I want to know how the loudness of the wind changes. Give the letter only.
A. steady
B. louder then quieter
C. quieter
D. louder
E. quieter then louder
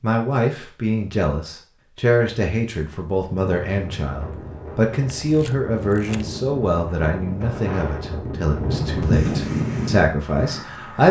D.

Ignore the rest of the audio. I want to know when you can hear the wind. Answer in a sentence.
The wind can be heard from 3.4 to 11.0 s.